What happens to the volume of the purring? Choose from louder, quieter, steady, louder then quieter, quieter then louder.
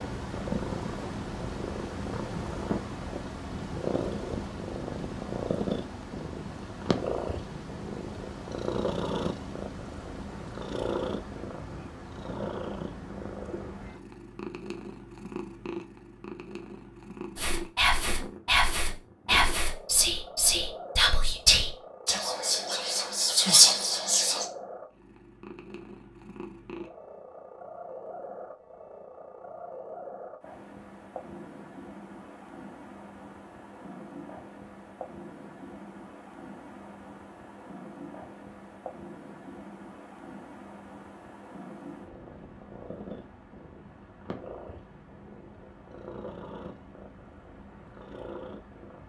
quieter.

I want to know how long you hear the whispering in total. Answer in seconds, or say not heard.
7 s.